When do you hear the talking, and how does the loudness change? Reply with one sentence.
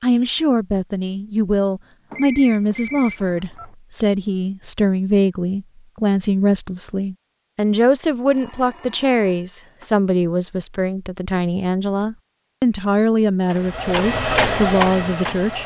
The talking can be heard from 0.0 to 15.6 s, at a steady volume.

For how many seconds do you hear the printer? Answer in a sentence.
You can hear the printer for 2 seconds altogether.